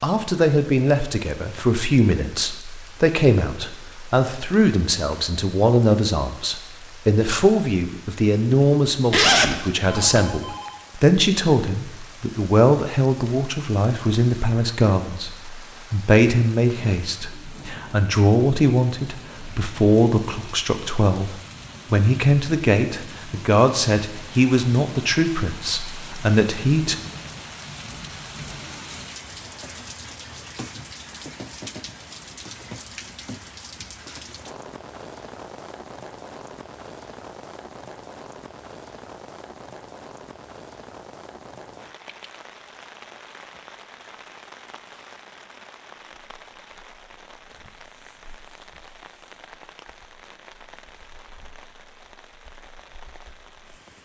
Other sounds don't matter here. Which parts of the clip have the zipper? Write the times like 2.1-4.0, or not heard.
9.1-10.2.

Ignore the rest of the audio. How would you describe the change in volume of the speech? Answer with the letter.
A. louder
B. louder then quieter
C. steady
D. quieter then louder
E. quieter
C.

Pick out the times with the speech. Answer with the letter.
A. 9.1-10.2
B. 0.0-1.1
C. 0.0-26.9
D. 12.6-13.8
C.